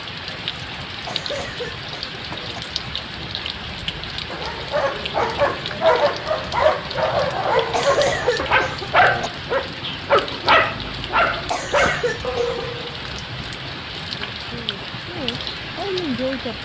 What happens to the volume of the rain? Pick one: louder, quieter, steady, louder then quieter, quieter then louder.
steady.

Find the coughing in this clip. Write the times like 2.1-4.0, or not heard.
1.1-2.6, 7.7-9.3, 11.5-12.7.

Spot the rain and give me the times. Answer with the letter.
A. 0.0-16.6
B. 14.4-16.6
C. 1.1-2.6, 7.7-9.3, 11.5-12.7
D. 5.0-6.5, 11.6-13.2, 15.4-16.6
A.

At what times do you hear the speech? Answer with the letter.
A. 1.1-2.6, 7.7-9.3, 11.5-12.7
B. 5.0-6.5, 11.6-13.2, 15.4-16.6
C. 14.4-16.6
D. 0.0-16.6
C.